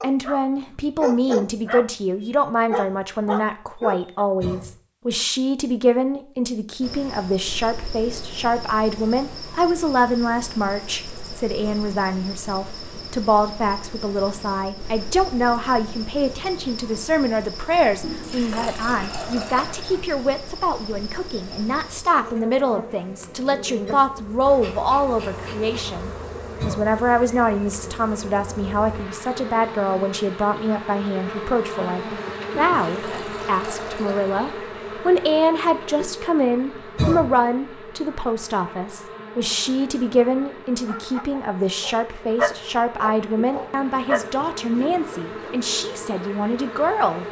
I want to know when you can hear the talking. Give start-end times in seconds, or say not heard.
0.0-47.2.